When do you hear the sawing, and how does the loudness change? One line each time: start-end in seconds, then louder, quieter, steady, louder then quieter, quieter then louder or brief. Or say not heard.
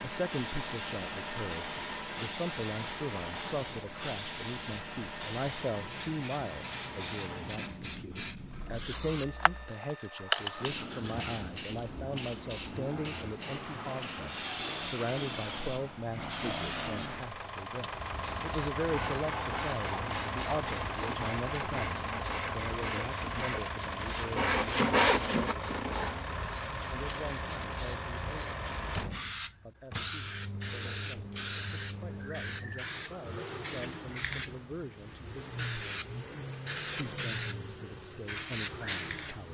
18.8-26.3 louder.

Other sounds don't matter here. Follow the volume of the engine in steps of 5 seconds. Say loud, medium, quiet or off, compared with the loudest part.
loud, medium, medium, loud, loud, loud, medium, medium.